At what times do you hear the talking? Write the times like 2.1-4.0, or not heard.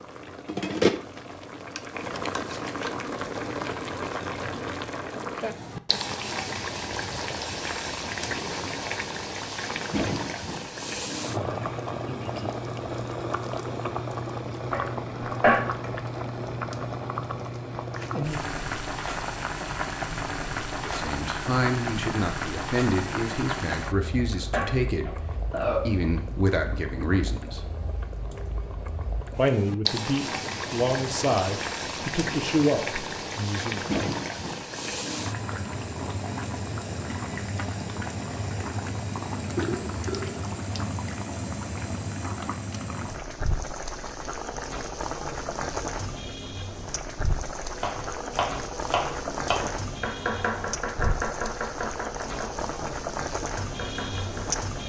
20.8-25.2, 25.9-27.6, 29.4-33.9.